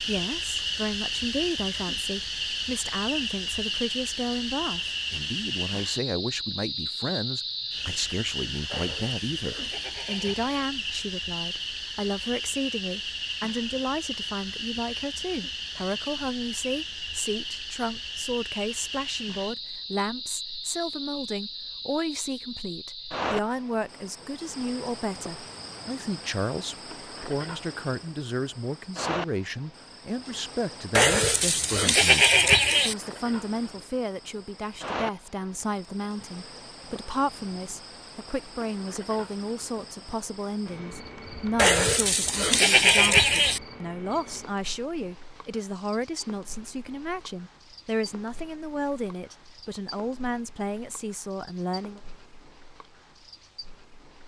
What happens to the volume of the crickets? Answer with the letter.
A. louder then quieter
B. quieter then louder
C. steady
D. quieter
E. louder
D.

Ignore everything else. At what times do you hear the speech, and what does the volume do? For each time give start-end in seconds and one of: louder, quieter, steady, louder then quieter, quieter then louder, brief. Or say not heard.
0.1-52.0 steady.